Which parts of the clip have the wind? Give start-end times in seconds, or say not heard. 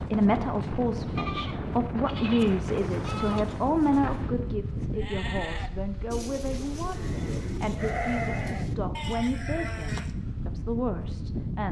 0.0-11.6.